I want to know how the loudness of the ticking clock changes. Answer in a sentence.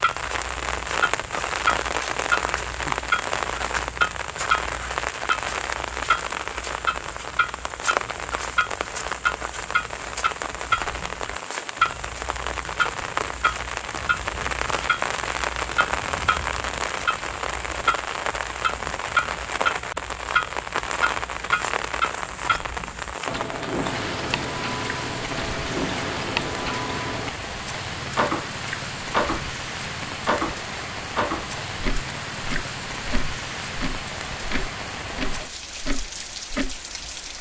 The loudness of the ticking clock stays about the same.